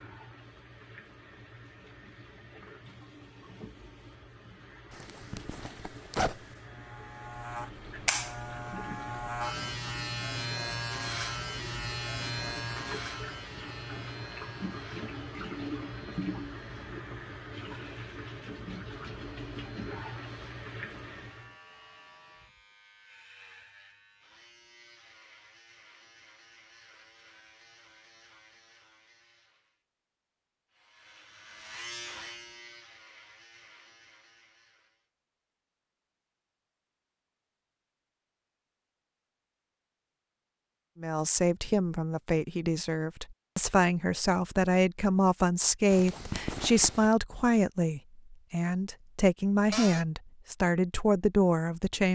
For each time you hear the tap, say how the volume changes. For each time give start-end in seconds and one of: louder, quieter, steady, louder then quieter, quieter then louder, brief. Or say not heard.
0.0-21.6 louder.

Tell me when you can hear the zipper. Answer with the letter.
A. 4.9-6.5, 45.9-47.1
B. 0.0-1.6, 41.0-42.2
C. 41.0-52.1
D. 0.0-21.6
A.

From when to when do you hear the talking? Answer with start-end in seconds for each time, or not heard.
41.0-52.1.